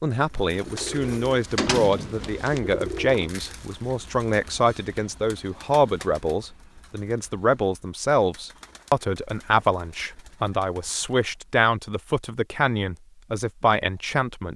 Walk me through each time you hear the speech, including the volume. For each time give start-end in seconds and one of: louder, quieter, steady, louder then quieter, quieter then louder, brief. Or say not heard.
0.0-14.5 steady.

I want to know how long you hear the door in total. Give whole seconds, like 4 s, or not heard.
2 s.